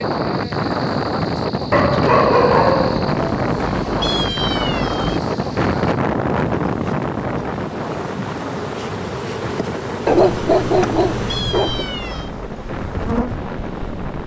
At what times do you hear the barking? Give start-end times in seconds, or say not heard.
1.7-3.2, 10.1-11.8.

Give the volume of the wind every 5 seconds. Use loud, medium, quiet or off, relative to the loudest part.
loud, loud, medium.